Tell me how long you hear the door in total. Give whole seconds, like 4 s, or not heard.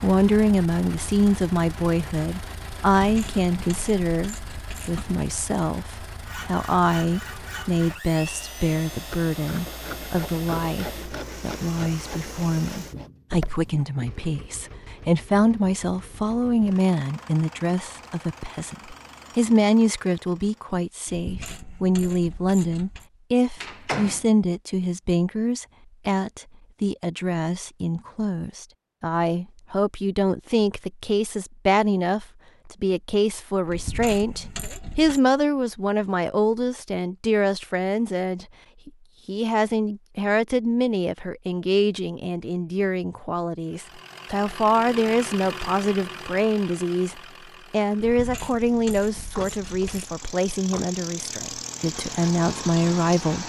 3 s.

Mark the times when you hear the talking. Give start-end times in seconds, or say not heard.
0.0-53.4.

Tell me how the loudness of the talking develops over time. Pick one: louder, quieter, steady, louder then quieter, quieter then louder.
steady.